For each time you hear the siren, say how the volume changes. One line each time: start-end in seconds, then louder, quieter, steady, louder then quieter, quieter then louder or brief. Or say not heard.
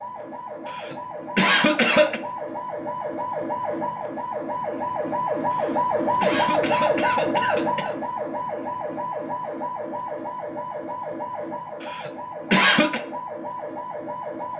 0.0-14.5 louder then quieter.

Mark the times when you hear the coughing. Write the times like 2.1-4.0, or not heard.
0.7-2.2, 5.5-8.0, 11.8-13.1.